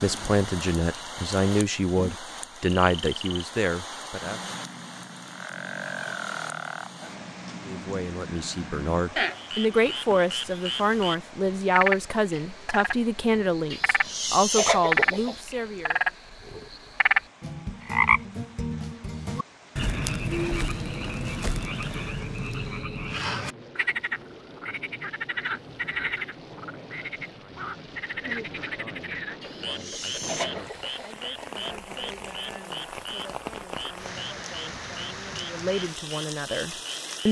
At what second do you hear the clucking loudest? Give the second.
15 s.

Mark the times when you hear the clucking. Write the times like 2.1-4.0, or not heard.
13.7-15.4, 29.4-31.1.